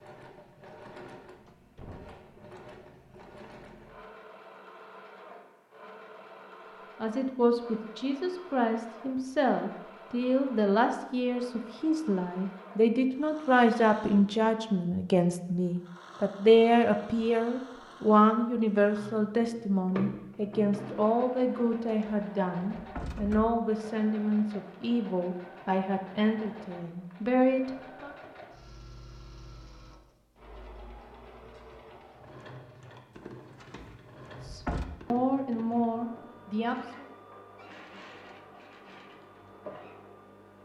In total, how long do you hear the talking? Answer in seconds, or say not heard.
24 s.